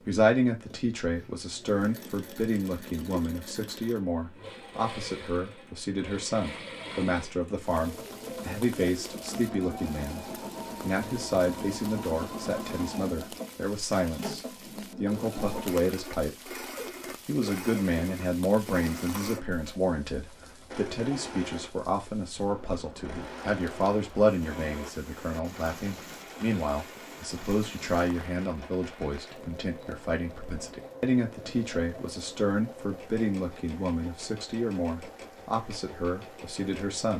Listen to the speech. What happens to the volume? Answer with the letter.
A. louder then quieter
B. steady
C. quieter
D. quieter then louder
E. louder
B.